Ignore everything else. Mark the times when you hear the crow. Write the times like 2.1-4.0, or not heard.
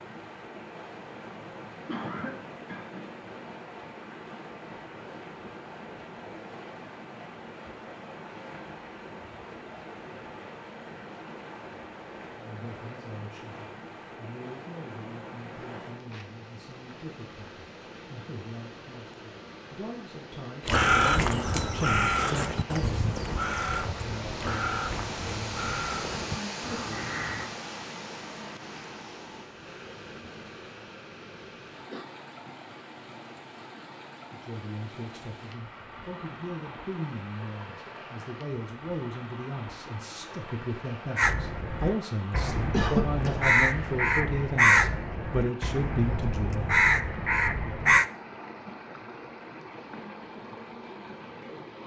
20.6-27.5, 41.1-48.0.